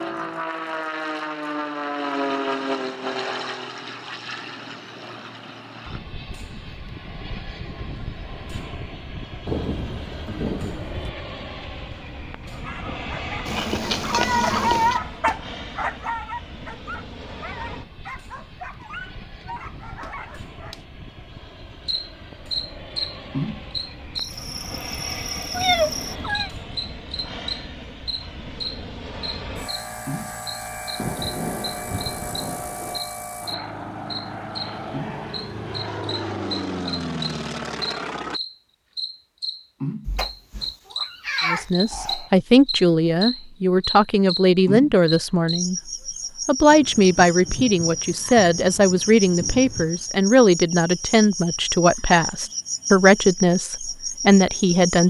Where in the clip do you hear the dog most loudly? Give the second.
15 s.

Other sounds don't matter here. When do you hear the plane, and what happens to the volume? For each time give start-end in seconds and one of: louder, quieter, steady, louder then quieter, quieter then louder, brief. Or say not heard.
0.0-38.4 quieter then louder.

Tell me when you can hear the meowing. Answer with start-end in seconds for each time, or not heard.
13.4-15.0, 25.5-26.5, 40.0-42.3.